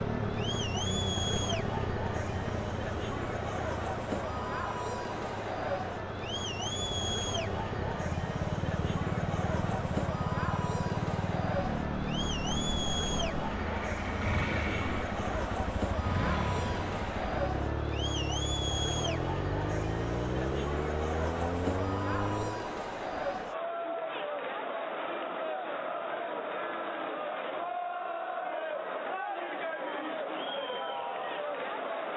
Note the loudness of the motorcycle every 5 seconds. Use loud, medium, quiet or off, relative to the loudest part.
loud, loud, loud, loud, loud, off, off.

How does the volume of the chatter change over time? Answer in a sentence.
The volume of the chatter stays about the same.